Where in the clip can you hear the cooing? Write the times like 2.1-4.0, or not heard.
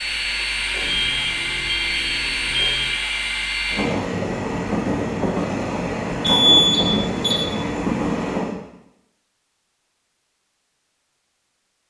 not heard.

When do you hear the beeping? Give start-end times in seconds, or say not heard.
0.8-2.9, 6.2-7.5.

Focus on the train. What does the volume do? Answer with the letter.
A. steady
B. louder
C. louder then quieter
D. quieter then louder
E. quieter
A.